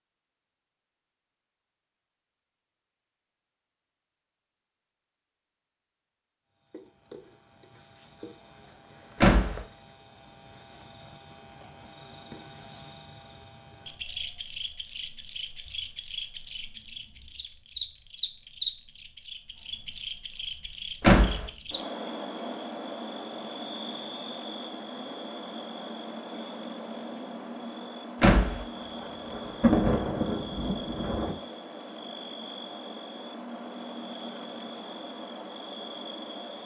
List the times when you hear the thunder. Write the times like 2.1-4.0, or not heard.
28.8-31.4.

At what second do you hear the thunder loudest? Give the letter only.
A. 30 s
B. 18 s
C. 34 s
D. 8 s
A.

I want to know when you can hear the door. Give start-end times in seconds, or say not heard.
9.2-9.6, 21.0-21.4, 28.2-28.6.